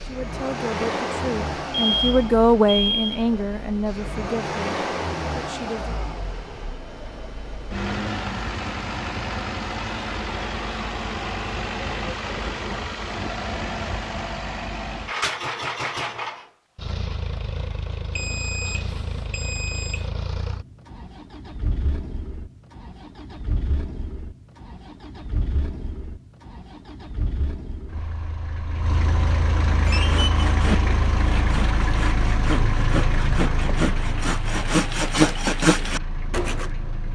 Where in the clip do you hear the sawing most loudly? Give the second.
35 s.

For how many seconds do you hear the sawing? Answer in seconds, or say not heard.
7 s.